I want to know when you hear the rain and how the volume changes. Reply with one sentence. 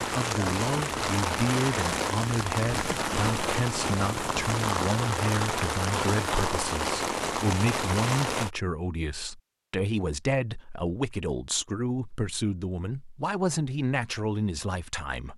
The rain can be heard from 0.0 to 8.5 s, at a steady volume.